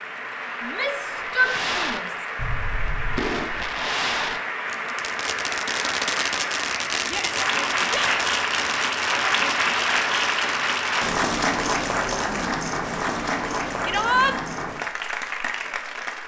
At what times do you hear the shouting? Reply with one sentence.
The shouting can be heard from 0.6 to 2.2 s, from 7.0 to 8.3 s and from 13.8 to 14.3 s.